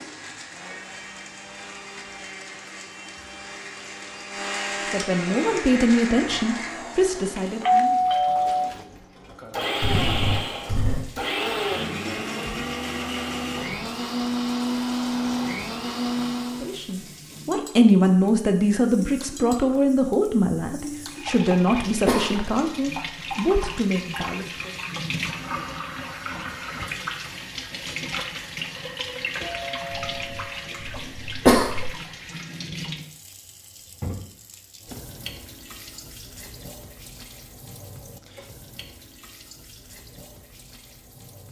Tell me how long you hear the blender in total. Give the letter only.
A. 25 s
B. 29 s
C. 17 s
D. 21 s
C.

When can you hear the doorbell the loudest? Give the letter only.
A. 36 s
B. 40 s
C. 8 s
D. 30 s
C.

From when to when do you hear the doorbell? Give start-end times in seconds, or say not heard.
7.6-8.8, 29.4-30.9.